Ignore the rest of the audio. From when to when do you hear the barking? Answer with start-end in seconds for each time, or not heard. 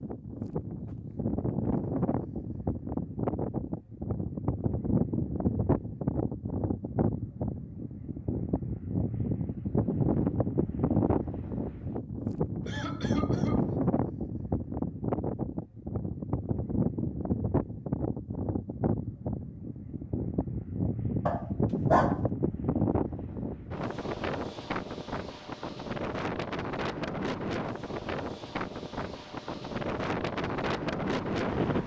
21.2-22.2.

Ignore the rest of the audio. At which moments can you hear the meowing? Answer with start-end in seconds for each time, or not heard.
not heard.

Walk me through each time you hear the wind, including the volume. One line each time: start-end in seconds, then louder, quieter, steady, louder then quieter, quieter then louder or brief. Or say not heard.
0.0-31.8 steady.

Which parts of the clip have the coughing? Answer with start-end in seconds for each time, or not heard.
12.7-13.8.